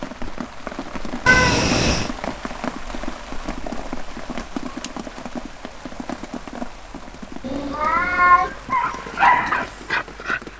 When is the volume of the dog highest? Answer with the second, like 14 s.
9 s.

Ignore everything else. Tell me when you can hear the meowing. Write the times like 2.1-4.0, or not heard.
1.2-2.1, 7.4-8.5.